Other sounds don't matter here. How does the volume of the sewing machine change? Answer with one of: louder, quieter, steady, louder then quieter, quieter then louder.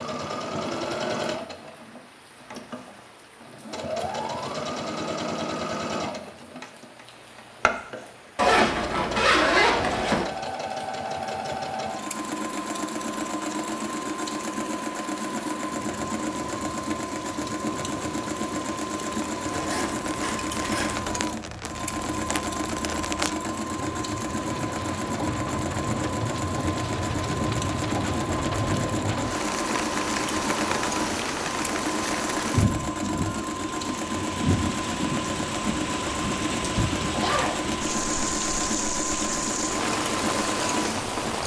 steady.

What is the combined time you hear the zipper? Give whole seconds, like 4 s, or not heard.
4 s.